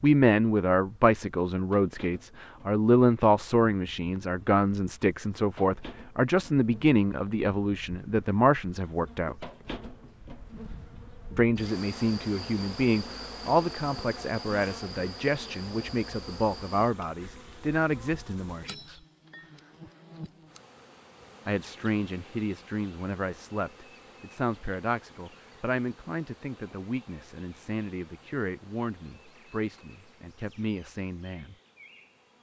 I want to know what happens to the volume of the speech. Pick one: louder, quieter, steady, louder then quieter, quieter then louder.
quieter.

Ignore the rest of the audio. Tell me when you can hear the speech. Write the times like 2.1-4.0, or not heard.
0.0-9.5, 11.3-19.0, 21.4-31.6.